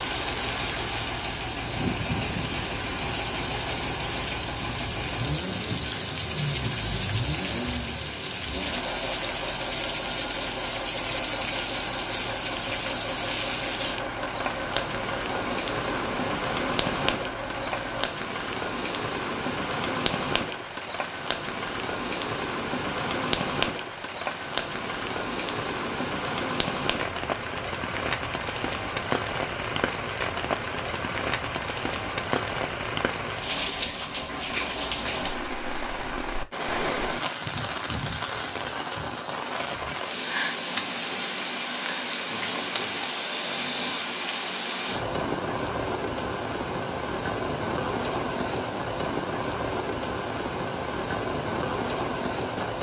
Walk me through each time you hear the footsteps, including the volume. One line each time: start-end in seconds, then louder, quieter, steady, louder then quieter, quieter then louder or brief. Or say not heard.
not heard.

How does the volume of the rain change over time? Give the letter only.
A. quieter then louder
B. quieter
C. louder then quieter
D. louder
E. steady
E.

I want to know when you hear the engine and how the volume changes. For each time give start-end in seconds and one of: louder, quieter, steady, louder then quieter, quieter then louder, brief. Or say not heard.
0.0-18.1 steady.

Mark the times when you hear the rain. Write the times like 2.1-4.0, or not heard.
0.0-52.7.